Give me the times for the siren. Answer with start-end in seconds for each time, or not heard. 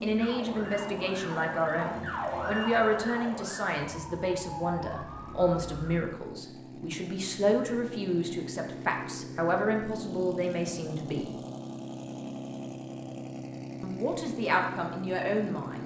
0.1-6.0.